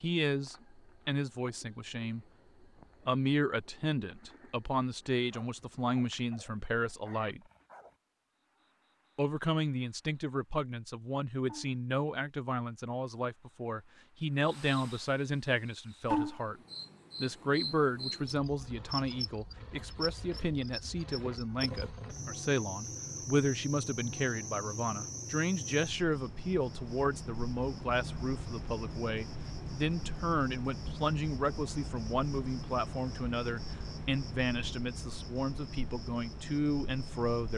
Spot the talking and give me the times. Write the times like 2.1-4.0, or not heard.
0.0-2.2, 3.0-7.4, 9.2-16.6, 17.2-37.5.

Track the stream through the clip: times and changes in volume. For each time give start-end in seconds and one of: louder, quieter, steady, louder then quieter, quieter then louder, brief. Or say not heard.
not heard.